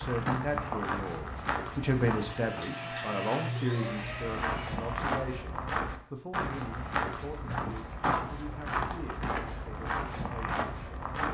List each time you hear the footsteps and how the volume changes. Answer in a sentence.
You can hear the footsteps briefly from 0.0 to 2.5 s; and from 4.0 to 11.2 s, at a steady volume.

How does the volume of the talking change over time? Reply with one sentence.
The volume of the talking goes down.